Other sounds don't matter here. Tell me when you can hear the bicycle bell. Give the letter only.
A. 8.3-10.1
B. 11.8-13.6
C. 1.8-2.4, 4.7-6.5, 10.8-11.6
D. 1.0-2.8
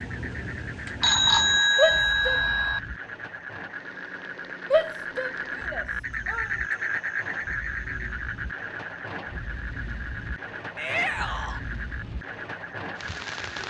D.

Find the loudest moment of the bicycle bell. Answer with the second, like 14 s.
1 s.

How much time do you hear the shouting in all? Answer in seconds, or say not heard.
3 s.